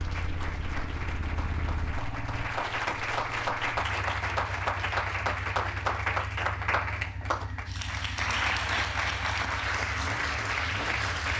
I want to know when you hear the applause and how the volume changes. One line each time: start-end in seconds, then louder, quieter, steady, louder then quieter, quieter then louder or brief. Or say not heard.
0.0-11.3 louder.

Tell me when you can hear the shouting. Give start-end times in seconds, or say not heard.
not heard.